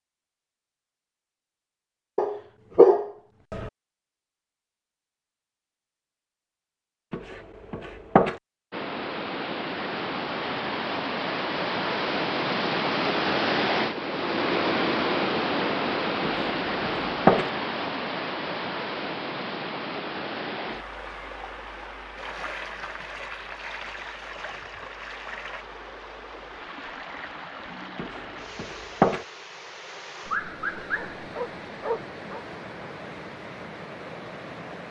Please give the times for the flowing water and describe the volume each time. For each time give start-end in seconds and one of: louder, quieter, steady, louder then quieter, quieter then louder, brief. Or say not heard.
8.7-34.8 quieter.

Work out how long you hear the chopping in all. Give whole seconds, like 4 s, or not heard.
4 s.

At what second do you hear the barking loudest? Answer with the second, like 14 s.
3 s.